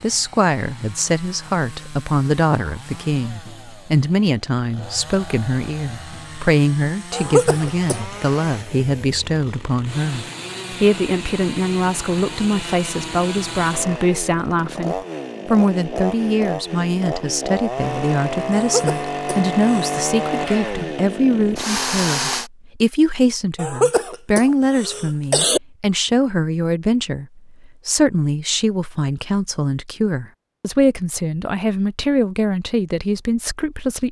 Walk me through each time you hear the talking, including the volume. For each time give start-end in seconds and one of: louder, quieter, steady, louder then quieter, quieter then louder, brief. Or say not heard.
0.0-34.0 steady.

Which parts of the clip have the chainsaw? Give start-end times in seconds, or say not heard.
0.0-22.5.